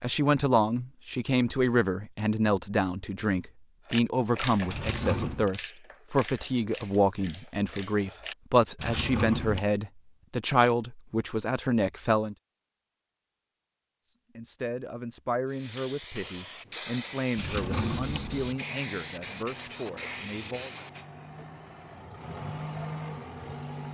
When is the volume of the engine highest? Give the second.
23 s.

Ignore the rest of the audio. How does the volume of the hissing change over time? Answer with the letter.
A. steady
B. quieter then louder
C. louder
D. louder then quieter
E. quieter
A.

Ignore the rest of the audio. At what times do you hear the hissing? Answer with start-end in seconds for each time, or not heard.
15.4-21.1.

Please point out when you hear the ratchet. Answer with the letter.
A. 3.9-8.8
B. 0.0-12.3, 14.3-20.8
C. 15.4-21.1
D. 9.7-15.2
A.